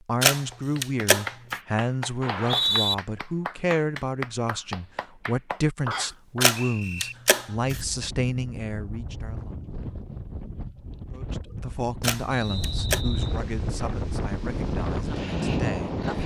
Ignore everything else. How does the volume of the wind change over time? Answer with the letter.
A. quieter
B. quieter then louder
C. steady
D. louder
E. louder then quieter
D.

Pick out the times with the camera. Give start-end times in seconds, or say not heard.
0.2-1.6, 6.4-7.8, 12.0-13.0.